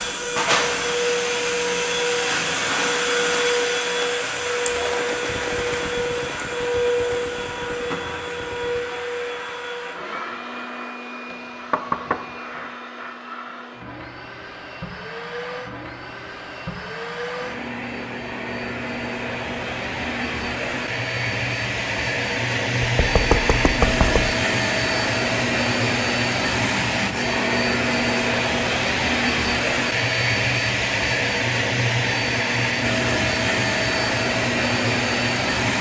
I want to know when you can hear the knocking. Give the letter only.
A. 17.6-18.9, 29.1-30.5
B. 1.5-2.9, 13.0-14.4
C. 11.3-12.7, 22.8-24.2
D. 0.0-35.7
C.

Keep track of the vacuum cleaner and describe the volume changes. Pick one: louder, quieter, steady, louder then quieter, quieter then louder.
quieter then louder.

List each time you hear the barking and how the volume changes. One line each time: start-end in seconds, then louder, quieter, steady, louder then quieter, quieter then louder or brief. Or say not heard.
not heard.